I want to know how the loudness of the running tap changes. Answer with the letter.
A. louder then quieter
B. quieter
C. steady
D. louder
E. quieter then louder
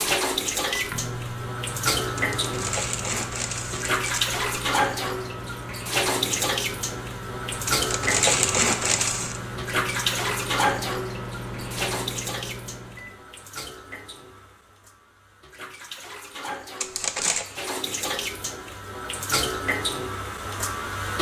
E.